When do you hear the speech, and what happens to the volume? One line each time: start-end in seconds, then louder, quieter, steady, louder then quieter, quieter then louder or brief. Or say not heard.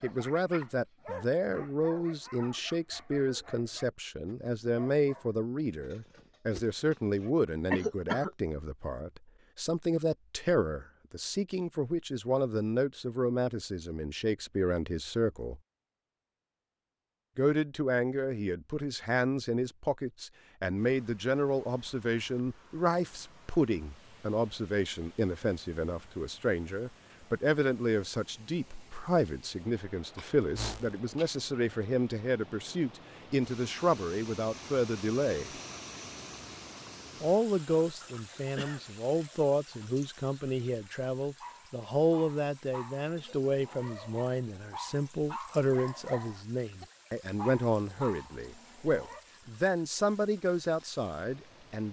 0.0-15.6 steady
17.4-35.5 steady
37.2-51.8 steady.